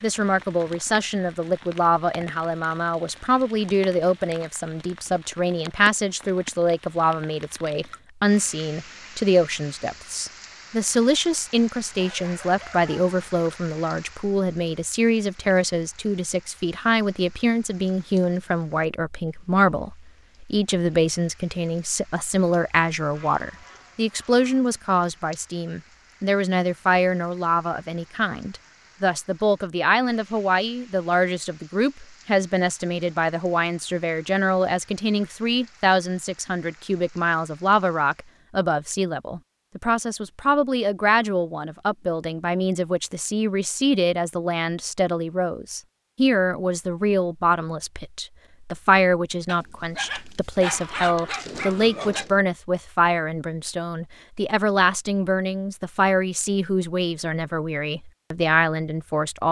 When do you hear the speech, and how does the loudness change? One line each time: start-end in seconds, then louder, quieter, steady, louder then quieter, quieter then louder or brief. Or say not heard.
0.0-59.4 steady.